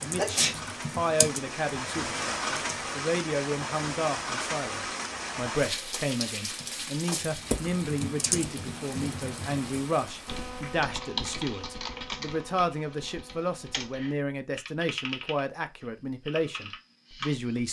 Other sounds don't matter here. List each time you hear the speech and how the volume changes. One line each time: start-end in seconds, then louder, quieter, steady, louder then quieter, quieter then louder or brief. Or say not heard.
0.0-17.6 steady.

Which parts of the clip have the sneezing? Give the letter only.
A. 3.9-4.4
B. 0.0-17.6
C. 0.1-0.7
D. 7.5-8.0
C.